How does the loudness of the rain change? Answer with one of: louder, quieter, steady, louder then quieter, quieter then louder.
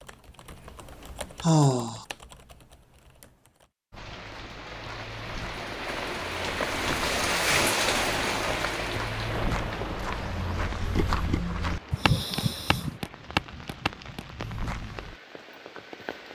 louder then quieter.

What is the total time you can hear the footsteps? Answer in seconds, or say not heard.
11 s.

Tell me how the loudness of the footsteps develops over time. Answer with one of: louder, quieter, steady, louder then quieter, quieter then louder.
louder.